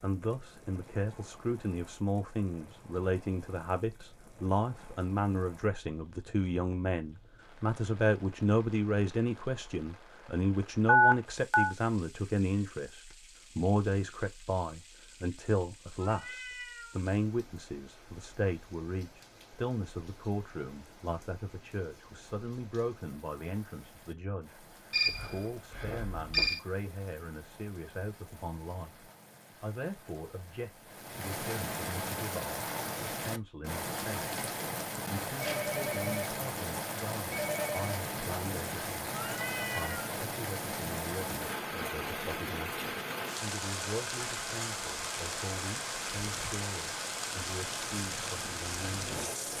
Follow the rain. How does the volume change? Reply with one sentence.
The volume of the rain goes up.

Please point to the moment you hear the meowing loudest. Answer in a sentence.
The volume of the meowing peaks at 40 seconds.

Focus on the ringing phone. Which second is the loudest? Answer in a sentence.
The loudest moment of the ringing phone is at 11 seconds.